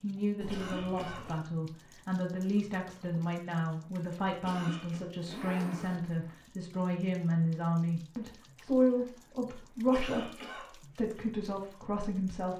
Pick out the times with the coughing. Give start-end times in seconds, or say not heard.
0.5-1.4, 4.5-5.0, 9.9-10.8.